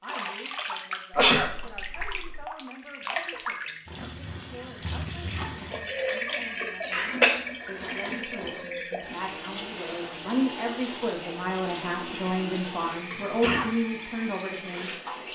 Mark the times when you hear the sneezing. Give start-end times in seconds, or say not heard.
1.1-2.4, 6.9-8.5, 13.2-13.7.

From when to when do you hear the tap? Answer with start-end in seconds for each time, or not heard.
0.0-15.2.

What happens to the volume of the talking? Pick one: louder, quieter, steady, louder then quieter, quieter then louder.
louder.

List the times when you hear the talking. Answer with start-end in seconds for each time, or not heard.
0.0-14.9.